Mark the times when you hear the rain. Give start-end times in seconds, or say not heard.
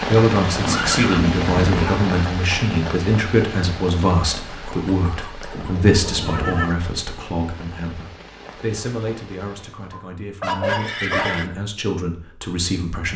0.0-10.0.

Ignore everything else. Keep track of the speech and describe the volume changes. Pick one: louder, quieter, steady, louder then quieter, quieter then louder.
quieter.